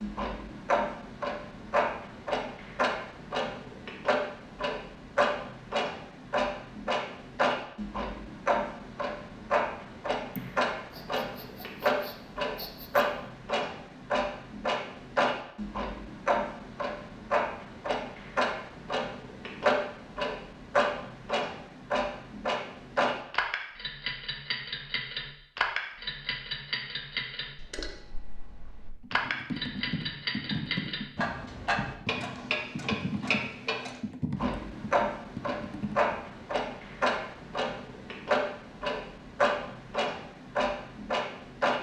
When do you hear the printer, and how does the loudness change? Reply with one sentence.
You can't hear the printer here.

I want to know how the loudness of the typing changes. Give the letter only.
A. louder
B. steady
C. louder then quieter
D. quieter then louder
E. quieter
E.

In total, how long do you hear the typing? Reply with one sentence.
You can hear the typing for 7 seconds altogether.